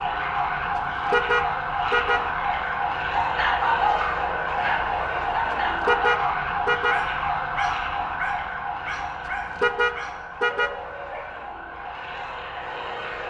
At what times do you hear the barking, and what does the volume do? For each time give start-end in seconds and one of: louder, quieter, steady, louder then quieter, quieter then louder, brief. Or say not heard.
3.1-11.4 quieter.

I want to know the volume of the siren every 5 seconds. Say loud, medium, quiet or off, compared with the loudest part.
loud, loud, medium.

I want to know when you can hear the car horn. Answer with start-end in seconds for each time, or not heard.
1.1-2.3, 5.8-7.0, 9.6-10.8.